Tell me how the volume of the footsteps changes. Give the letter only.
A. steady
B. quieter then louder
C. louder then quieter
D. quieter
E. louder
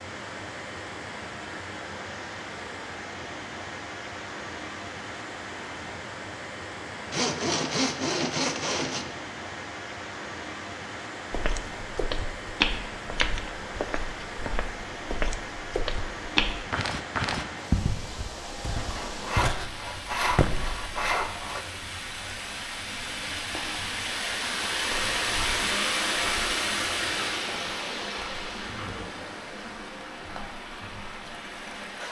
B.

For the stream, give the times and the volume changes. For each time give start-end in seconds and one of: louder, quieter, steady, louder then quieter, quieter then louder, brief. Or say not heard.
0.0-32.0 louder.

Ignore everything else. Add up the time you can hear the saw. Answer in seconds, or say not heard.
5 s.